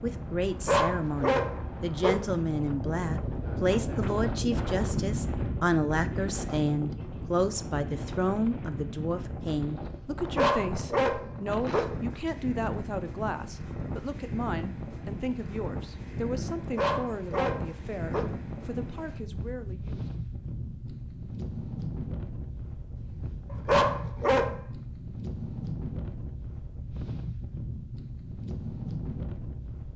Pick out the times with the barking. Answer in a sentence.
The barking can be heard from 0.7 to 2.3 s, from 10.3 to 12.0 s, from 16.8 to 18.2 s and from 23.6 to 24.6 s.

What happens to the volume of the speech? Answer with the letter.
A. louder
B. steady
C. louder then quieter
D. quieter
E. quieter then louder
D.